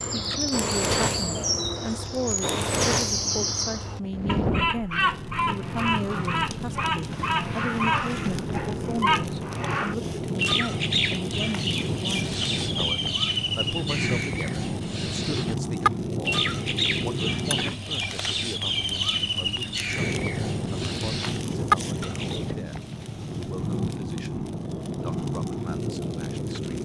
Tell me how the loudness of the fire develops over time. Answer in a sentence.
The volume of the fire stays about the same.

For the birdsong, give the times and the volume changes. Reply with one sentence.
You can hear the birdsong from 0.0 to 22.4 s, at a steady volume.